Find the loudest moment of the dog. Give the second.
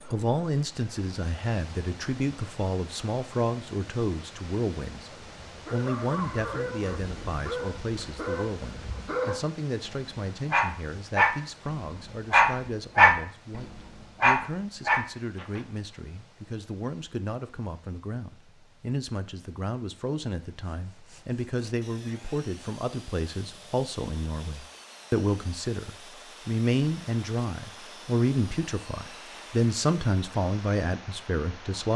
13 s.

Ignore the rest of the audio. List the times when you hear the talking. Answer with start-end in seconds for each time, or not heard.
0.1-31.9.